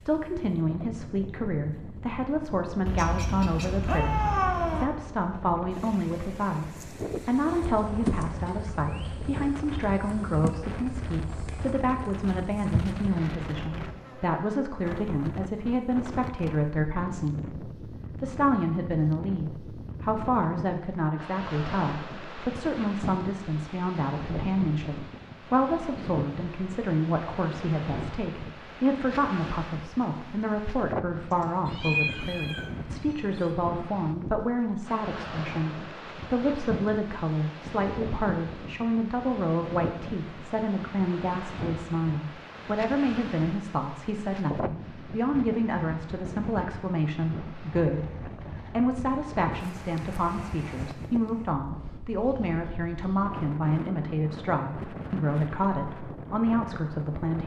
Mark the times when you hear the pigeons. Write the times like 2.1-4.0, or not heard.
not heard.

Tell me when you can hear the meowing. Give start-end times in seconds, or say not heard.
2.9-4.8, 31.6-33.5.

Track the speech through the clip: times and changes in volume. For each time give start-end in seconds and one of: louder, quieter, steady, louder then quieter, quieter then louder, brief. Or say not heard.
0.1-48.1 steady
48.7-57.4 steady.